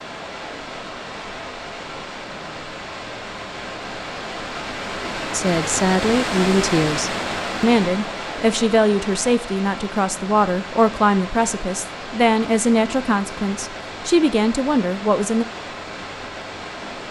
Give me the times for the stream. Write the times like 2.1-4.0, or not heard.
0.0-17.0.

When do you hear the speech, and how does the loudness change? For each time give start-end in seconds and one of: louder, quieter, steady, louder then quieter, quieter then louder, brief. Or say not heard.
5.3-15.4 steady.